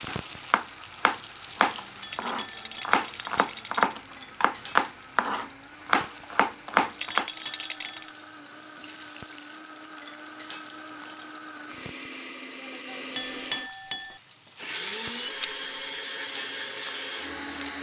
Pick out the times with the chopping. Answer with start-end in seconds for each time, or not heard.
0.1-7.3.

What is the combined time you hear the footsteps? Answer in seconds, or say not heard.
not heard.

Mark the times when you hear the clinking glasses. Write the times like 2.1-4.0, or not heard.
2.0-3.0, 7.2-8.1, 13.2-14.2.